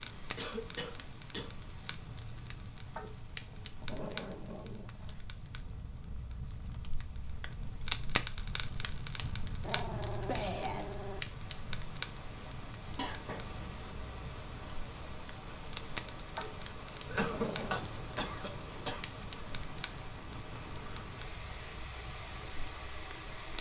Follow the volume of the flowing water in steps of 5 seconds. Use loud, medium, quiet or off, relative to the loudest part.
medium, quiet, loud, loud, loud.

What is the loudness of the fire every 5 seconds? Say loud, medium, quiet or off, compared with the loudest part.
medium, loud, loud, medium, medium.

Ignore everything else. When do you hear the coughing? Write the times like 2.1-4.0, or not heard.
0.3-1.5, 12.9-13.6, 17.1-19.0.